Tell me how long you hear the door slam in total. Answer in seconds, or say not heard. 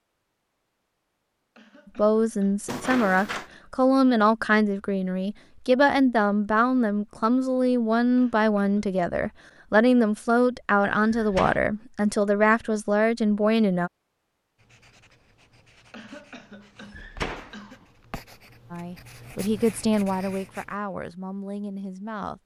2 s.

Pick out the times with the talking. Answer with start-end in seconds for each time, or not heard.
1.9-13.9, 18.7-22.4.